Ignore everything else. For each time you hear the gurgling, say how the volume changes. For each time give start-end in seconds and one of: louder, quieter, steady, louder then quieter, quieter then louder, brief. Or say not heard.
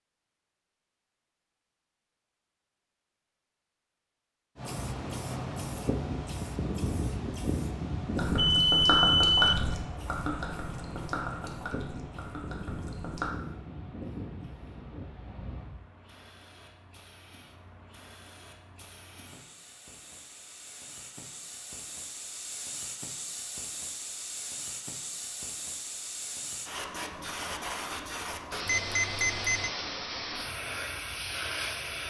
8.2-13.3 quieter.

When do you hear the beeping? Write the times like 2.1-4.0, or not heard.
8.3-9.7, 28.6-29.7.